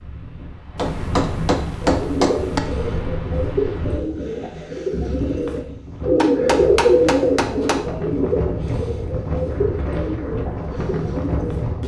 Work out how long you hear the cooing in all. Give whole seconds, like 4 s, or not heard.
10 s.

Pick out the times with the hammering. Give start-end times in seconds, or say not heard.
0.8-2.6, 6.2-7.8.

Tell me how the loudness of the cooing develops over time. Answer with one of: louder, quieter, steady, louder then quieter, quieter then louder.
louder then quieter.